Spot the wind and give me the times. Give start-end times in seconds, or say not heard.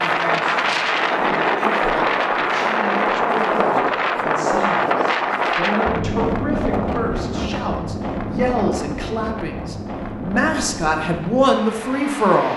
0.0-12.5.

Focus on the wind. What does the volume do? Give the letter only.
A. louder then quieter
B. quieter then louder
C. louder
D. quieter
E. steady
D.